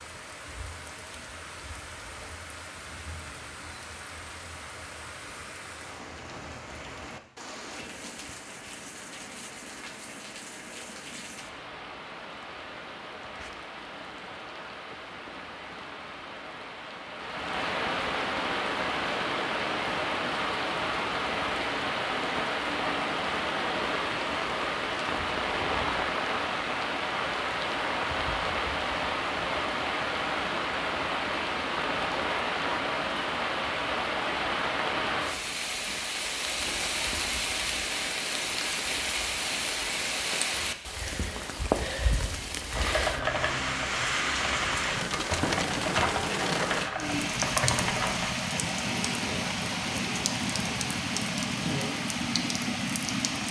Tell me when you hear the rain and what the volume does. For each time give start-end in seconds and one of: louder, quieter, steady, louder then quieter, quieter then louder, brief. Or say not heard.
0.0-53.4 louder.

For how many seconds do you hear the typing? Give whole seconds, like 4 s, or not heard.
6 s.